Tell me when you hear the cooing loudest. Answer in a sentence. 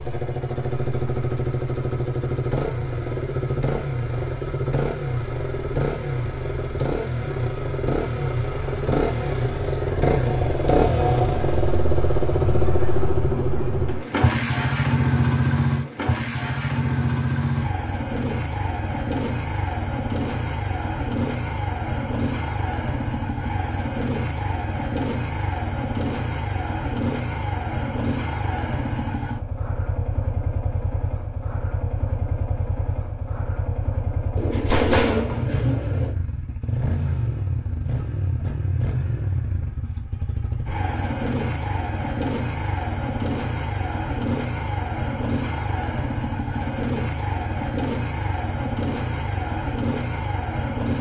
The volume of the cooing peaks at 35 seconds.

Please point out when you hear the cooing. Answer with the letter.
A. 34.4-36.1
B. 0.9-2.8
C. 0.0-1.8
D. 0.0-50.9
A.